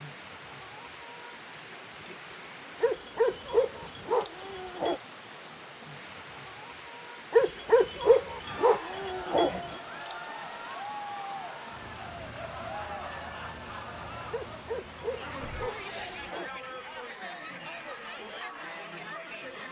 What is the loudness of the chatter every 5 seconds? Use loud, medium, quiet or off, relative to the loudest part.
off, loud, loud, loud.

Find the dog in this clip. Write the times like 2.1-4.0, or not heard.
2.8-5.0, 7.3-9.6, 14.3-17.1.